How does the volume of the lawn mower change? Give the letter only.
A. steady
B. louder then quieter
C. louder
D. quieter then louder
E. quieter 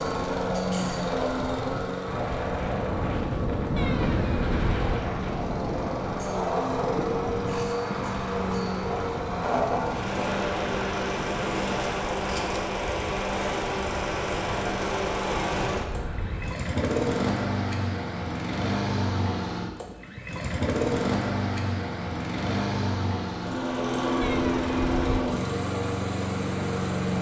A.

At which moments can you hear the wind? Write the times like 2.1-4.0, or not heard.
0.0-16.1.